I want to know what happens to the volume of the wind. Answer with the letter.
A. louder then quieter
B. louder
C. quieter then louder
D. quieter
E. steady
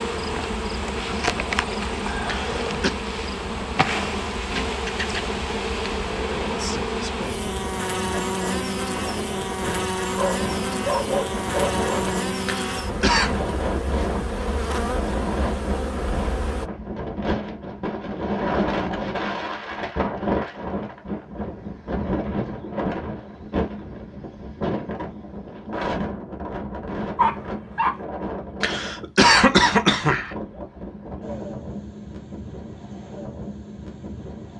A.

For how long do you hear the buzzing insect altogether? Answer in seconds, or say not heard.
17 s.